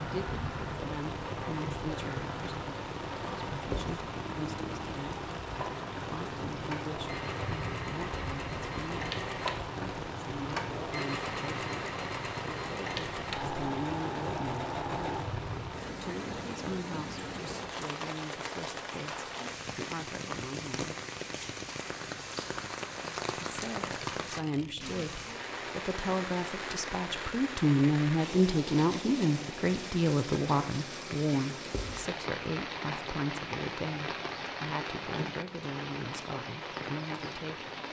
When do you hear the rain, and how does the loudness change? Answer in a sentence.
You can hear the rain from 0.0 to 37.8 s, at a steady volume.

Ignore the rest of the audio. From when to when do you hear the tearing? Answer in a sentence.
You can hear the tearing from 22.9 to 25.4 s.